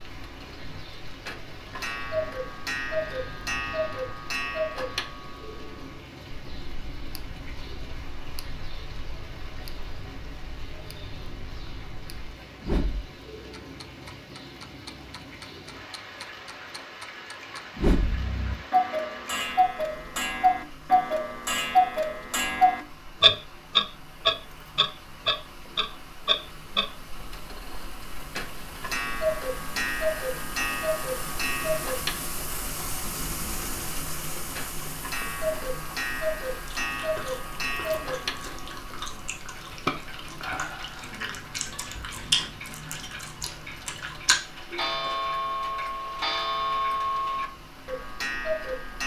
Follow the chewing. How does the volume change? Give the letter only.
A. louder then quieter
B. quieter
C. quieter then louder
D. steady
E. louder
E.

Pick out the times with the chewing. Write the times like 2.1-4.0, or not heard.
36.6-44.9.